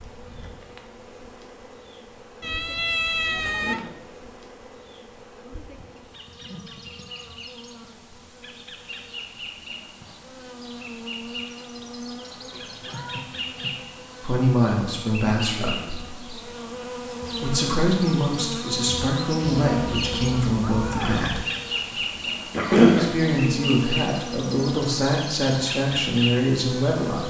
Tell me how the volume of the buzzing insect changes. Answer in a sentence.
The loudness of the buzzing insect goes up.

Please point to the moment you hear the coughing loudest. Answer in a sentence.
The volume of the coughing peaks at 23 seconds.